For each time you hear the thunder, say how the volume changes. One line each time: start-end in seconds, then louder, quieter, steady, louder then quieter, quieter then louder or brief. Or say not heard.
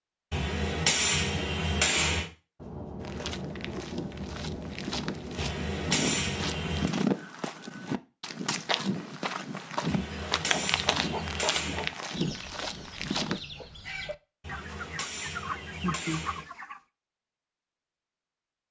2.5-6.9 steady.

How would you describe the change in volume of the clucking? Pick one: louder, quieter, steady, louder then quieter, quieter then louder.
louder.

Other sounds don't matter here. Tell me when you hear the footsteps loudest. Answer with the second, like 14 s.
7 s.